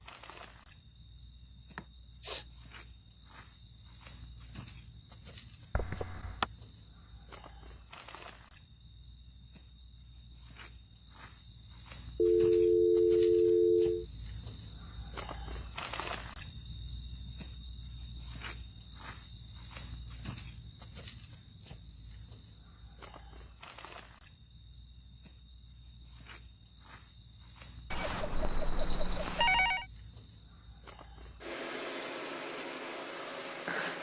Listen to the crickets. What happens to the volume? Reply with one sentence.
The loudness of the crickets goes up, then down.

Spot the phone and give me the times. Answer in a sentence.
You can hear the phone from 5.7 to 6.5 s, from 12.2 to 14.1 s and from 27.9 to 29.9 s.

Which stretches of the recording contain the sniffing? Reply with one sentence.
The sniffing can be heard from 1.8 to 2.5 s.